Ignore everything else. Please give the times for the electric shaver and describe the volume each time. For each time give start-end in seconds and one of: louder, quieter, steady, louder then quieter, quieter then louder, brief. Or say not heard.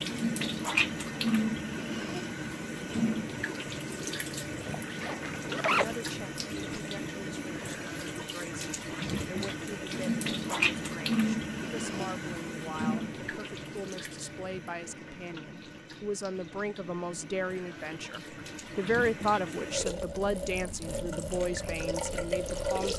not heard.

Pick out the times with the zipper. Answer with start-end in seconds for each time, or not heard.
4.6-5.8.